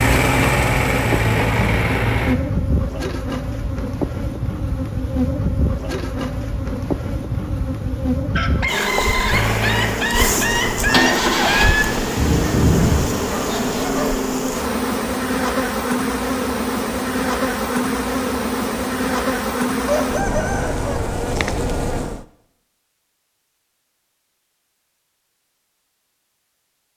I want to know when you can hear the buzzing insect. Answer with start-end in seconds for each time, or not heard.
0.0-22.2.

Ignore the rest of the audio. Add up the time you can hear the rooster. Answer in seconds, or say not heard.
5 s.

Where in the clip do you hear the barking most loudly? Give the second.
13 s.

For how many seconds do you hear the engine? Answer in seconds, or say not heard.
7 s.